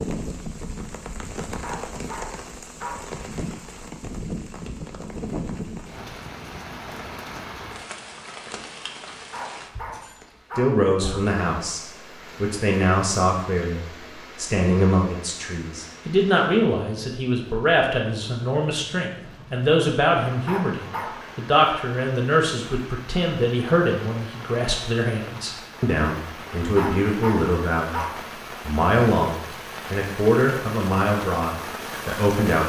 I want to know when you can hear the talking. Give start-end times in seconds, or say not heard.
10.6-28.0, 28.6-32.6.